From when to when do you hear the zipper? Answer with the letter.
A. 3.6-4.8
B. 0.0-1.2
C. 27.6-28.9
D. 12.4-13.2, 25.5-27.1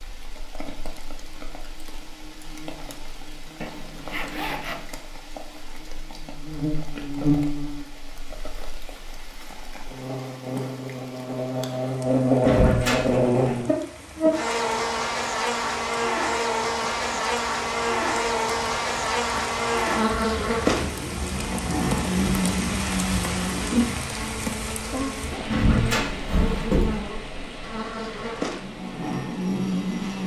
A.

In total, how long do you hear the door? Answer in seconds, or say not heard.
2 s.